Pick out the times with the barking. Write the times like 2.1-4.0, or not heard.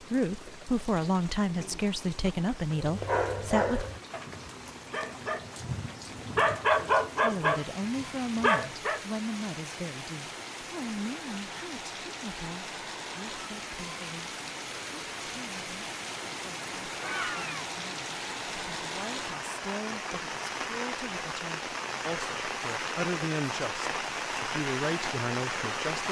2.8-9.0.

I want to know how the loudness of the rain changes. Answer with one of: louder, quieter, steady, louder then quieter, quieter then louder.
louder.